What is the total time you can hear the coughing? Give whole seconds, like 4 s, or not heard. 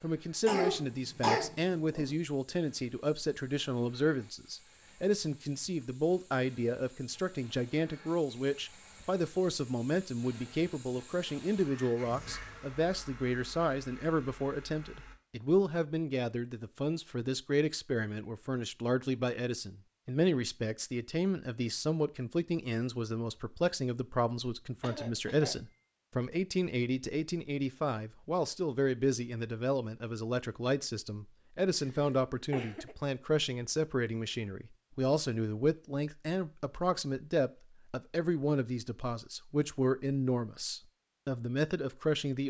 4 s.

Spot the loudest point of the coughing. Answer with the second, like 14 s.
1 s.